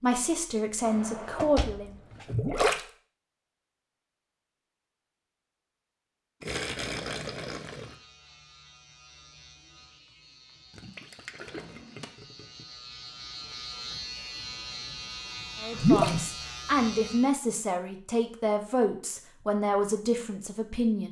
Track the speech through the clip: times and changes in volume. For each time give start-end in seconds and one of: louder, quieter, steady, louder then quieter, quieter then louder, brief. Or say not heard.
0.0-1.9 brief
15.6-21.0 steady.